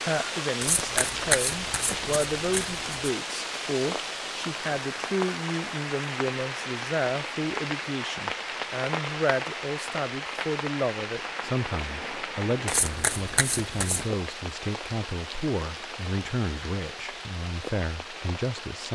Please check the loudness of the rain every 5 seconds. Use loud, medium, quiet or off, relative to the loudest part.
loud, loud, loud, medium.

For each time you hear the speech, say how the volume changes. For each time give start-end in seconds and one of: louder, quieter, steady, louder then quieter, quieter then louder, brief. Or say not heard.
0.0-18.9 steady.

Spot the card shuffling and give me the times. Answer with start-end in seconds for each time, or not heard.
0.6-3.1, 12.7-14.1.